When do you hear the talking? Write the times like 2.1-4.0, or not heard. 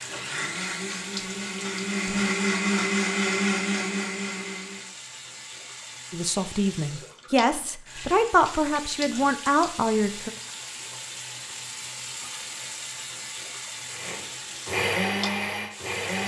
6.1-10.3.